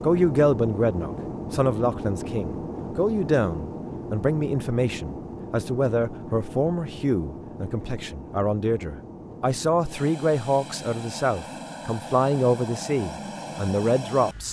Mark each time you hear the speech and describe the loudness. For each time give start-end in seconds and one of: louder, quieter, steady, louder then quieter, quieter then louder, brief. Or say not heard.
0.0-14.4 steady.